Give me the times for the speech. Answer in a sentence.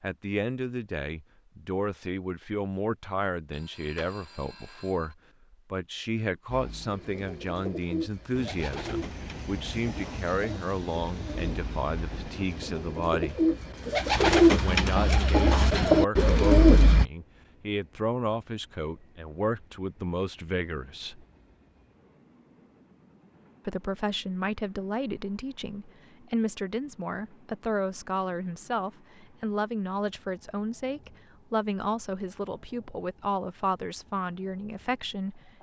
The speech can be heard from 0.0 to 13.4 s, from 14.6 to 21.2 s and from 23.6 to 35.5 s.